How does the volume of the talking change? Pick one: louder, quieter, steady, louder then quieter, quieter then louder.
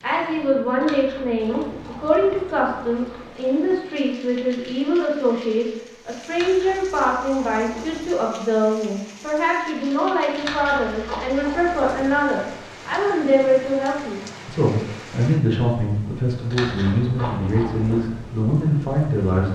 steady.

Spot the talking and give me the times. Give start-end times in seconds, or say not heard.
0.0-19.5.